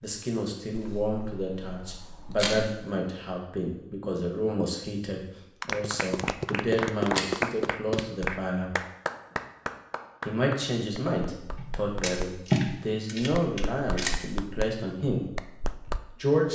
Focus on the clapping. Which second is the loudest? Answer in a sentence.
The volume of the clapping peaks at 7 seconds.